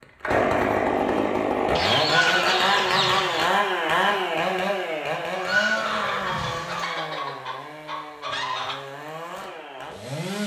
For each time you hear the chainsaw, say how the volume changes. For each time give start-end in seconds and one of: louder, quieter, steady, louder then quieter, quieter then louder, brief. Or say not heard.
0.0-10.4 quieter.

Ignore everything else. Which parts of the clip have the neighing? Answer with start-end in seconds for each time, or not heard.
2.0-3.5, 5.3-6.9.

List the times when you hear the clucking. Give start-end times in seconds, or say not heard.
1.8-3.5, 5.8-8.8.